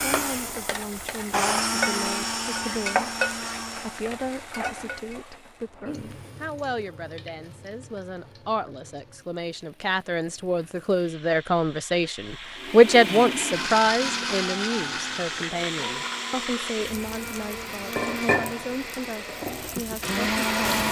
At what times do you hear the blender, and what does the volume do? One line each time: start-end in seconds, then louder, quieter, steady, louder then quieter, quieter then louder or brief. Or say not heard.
0.0-4.0 louder then quieter
12.6-20.8 quieter then louder.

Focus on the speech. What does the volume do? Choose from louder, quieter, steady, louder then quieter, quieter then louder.
louder then quieter.